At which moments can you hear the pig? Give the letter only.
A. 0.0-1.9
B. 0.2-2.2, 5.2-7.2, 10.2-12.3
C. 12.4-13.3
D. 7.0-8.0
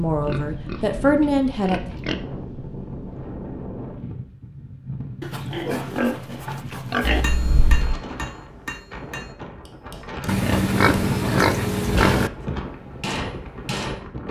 B.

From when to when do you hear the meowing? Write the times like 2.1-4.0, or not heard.
7.0-8.0.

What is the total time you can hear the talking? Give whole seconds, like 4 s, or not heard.
2 s.